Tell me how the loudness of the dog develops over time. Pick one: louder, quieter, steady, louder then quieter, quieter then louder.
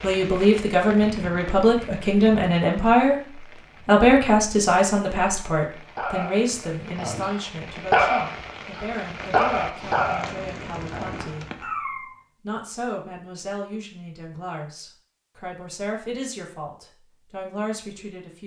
louder then quieter.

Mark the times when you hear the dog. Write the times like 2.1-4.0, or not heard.
6.0-12.2.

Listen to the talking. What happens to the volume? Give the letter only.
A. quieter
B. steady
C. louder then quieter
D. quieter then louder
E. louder
A.